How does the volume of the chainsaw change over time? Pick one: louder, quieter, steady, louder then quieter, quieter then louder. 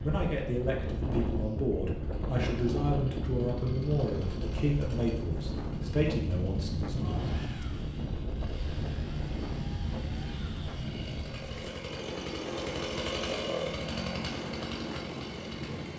louder.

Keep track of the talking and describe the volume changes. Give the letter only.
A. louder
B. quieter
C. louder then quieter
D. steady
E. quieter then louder
D.